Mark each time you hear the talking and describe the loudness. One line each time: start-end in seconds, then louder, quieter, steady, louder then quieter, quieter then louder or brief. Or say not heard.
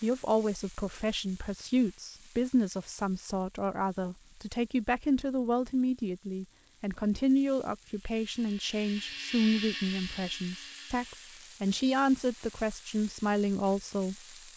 0.0-14.2 steady.